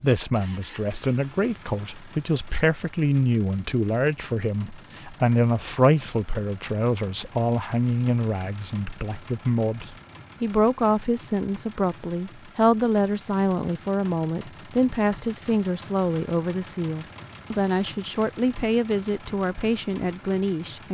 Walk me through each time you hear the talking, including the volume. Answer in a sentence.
The talking can be heard from 0.0 to 20.9 s, at a steady volume.